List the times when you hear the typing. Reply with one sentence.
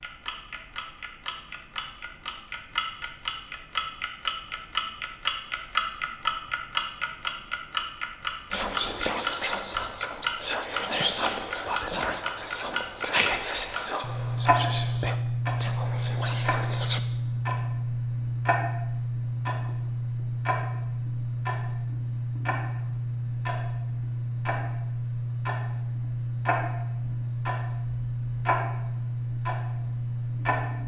The typing can't be heard in this clip.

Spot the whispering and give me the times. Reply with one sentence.
You can hear the whispering from 8.5 to 17.0 s.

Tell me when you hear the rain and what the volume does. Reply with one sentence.
You can't hear the rain here.